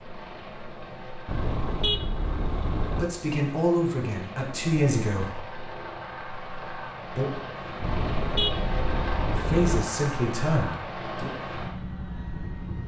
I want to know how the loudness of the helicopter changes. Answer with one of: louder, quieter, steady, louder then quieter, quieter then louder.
louder.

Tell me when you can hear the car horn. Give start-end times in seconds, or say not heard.
1.2-3.1, 7.8-9.8.